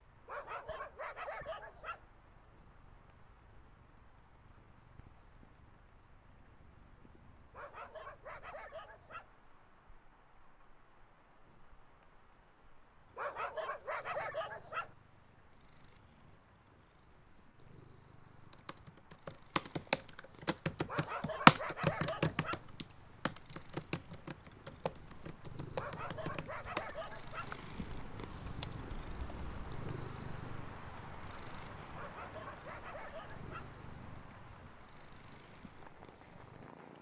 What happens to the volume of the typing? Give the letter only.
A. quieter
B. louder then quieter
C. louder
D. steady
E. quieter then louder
B.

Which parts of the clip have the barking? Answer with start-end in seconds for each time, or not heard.
0.2-2.0, 7.5-9.3, 13.2-14.9, 20.9-22.6, 25.8-27.6, 31.9-33.7.